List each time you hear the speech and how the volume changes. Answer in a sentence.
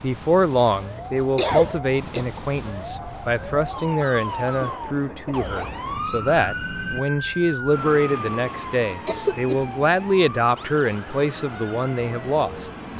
The speech can be heard from 0.0 to 12.9 s, at a steady volume.